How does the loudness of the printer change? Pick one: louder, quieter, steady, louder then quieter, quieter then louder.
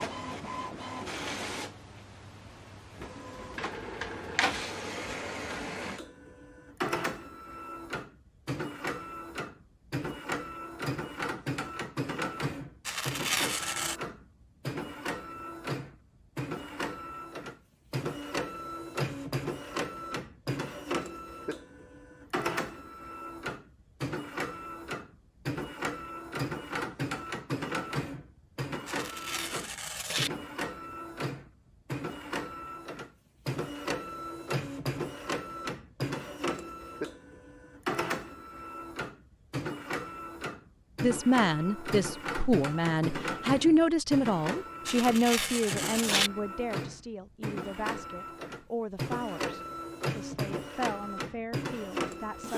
steady.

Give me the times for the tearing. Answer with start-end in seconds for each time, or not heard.
12.8-14.0, 28.9-30.3, 44.9-46.3.